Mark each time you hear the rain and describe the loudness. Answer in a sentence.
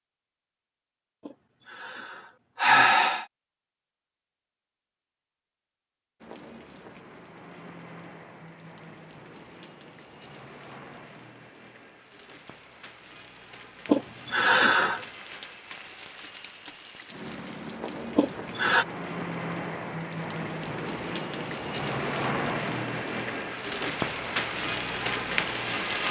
You can hear the rain from 6.2 to 26.0 s, getting louder.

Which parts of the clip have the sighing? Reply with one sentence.
You can hear the sighing from 1.2 to 3.2 s, from 13.8 to 15.1 s and from 18.1 to 18.9 s.